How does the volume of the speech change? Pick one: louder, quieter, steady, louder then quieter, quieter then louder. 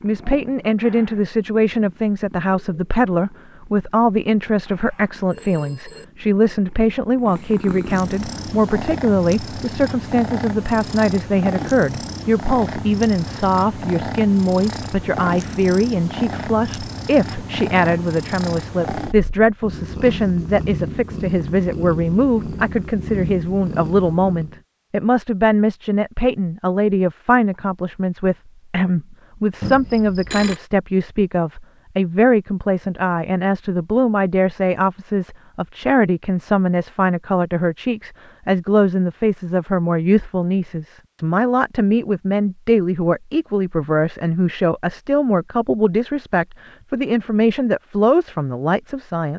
steady.